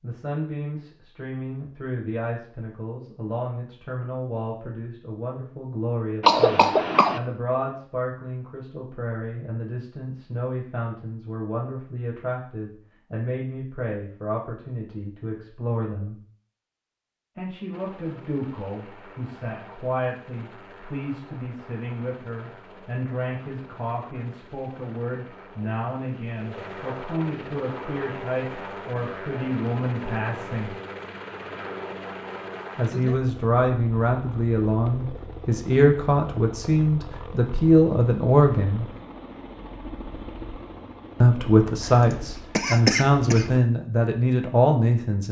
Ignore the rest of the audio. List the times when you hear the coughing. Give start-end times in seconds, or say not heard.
6.2-7.2, 41.9-43.5.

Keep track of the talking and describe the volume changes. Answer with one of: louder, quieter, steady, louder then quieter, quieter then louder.
louder.